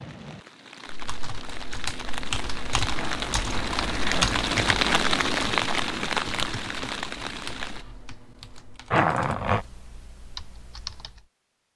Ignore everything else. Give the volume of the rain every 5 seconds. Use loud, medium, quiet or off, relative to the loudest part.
loud, loud, off.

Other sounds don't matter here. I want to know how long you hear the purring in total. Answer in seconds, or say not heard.
not heard.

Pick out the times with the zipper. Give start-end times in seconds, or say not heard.
3.0-4.3, 8.9-9.7.